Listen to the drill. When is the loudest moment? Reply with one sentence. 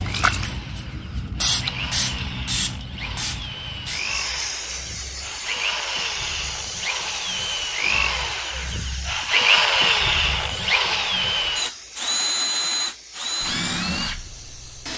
The loudest moment of the drill is at 10 seconds.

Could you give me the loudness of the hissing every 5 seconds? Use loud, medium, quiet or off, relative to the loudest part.
loud, medium, quiet.